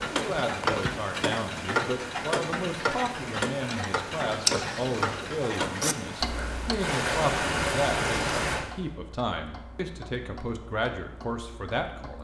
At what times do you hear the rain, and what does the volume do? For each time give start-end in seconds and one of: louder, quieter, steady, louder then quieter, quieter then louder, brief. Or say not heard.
0.0-8.7 louder.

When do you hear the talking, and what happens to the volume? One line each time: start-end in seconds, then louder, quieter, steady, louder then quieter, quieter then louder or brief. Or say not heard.
0.1-12.1 steady.